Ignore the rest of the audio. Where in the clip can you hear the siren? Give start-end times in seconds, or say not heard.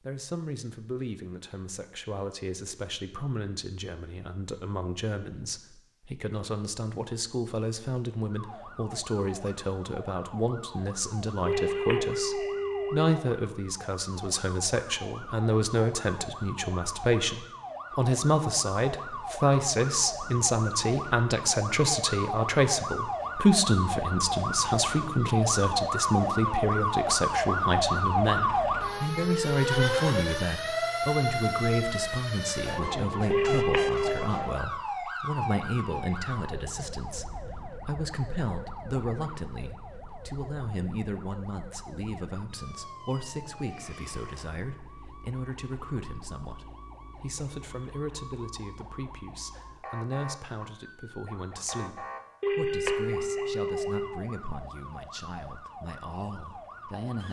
8.3-57.2.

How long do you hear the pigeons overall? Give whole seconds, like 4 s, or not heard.
not heard.